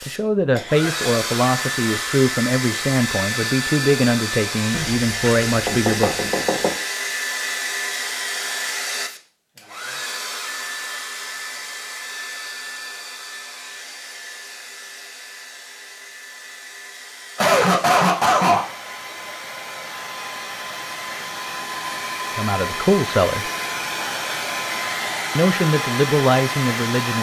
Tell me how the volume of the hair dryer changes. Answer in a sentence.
The loudness of the hair dryer goes down, then up.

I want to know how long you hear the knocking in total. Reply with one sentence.
You can hear the knocking for 2 seconds altogether.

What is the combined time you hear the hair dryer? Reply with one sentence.
You can hear the hair dryer for 27 seconds altogether.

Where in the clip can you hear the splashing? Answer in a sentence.
You can't hear the splashing here.